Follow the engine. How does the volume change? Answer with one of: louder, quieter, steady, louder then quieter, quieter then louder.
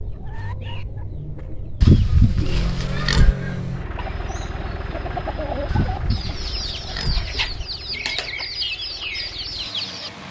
quieter.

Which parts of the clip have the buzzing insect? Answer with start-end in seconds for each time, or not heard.
not heard.